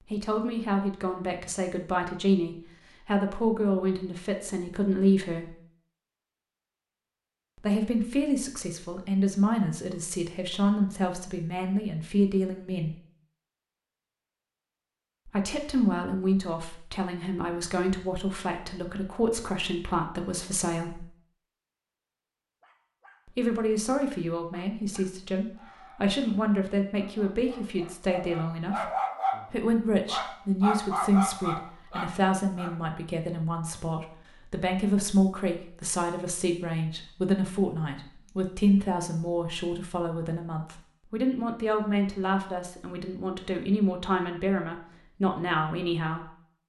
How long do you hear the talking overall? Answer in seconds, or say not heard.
39 s.